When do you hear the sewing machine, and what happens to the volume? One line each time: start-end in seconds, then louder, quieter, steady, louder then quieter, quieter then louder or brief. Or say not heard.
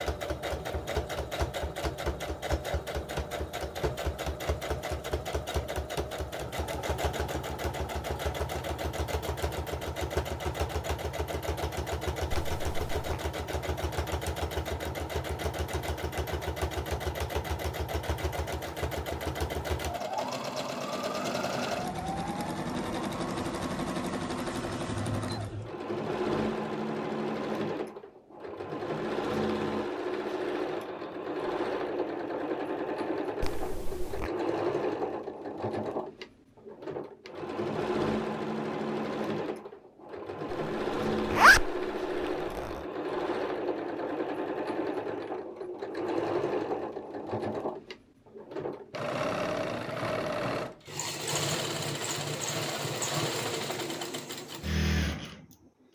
0.0-55.9 steady.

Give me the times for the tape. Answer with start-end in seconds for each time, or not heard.
not heard.